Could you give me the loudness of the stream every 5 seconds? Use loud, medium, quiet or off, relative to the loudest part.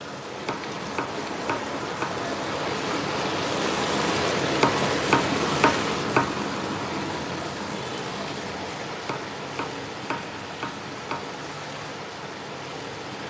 loud, loud, medium.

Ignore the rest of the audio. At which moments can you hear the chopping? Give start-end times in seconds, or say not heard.
0.5-2.2, 4.6-6.4, 9.1-11.3.